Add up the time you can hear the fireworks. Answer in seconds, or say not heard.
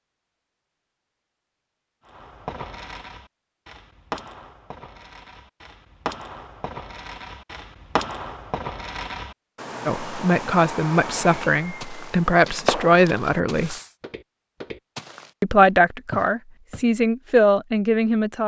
12 s.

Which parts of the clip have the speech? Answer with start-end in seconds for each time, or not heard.
9.8-13.8, 15.4-18.4.